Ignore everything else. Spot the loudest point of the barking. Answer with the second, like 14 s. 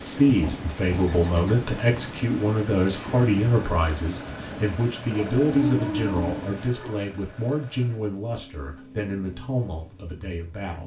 6 s.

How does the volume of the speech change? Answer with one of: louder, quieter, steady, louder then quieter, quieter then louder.
quieter.